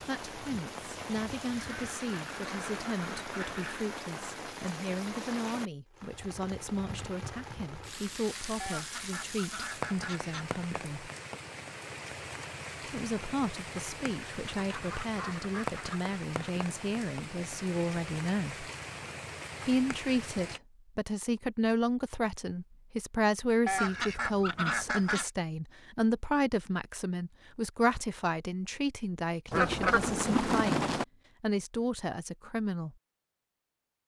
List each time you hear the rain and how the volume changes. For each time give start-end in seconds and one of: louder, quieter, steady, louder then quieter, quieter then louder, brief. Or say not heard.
0.0-20.6 steady.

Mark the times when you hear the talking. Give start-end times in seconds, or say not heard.
0.1-11.1, 12.8-18.7, 19.6-33.0.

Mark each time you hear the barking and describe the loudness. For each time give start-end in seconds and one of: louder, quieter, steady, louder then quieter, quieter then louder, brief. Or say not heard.
not heard.